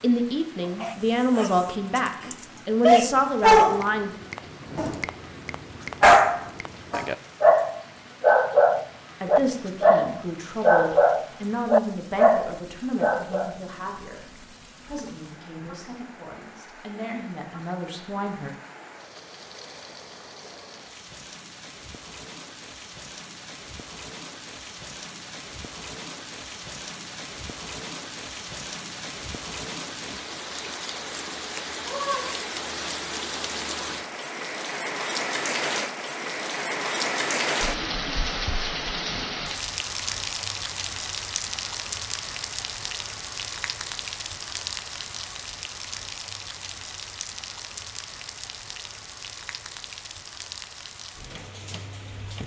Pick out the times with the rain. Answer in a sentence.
You can hear the rain from 0.0 to 52.4 s.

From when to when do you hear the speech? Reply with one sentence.
The speech can be heard from 0.0 to 4.2 s and from 9.2 to 18.5 s.